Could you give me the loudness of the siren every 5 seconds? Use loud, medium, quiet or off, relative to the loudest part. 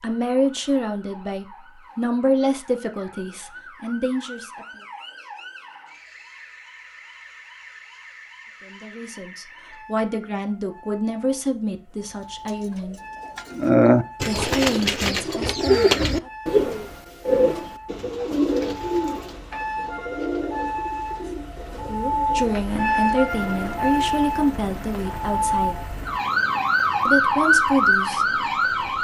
quiet, quiet, quiet, quiet, medium, loud.